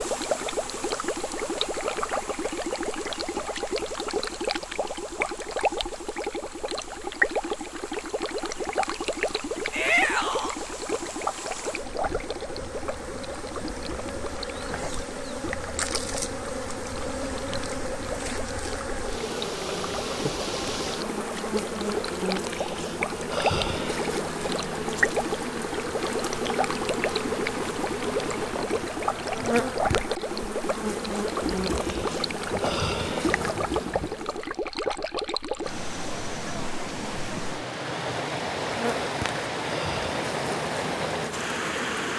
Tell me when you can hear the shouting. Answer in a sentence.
The shouting can be heard from 9.7 to 10.6 s.